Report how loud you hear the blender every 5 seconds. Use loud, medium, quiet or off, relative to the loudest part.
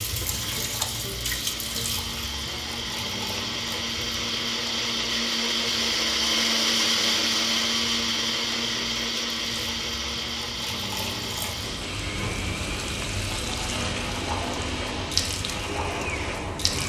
medium, loud, medium, medium.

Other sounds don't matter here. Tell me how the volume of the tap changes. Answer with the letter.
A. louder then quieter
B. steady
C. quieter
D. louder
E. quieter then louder
E.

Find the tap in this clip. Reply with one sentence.
The tap can be heard from 0.0 to 16.8 s.